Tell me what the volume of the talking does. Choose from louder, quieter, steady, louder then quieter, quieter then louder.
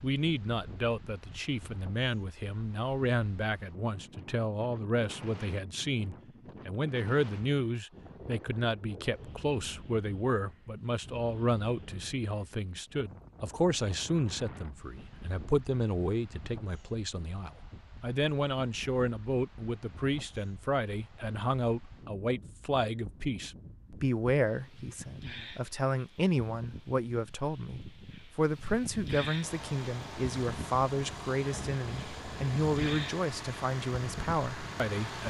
steady.